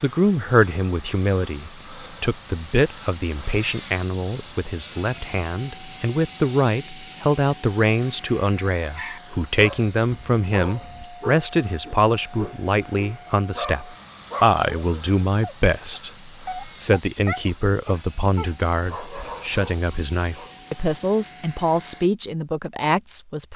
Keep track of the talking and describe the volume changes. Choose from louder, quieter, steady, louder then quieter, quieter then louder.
steady.